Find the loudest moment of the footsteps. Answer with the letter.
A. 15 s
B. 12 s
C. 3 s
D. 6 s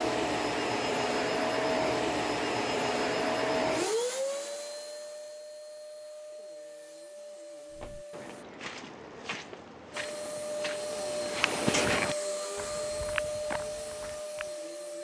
B.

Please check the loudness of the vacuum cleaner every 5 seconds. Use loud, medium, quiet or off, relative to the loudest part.
loud, quiet, medium.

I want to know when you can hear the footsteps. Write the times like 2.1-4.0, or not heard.
7.7-14.5.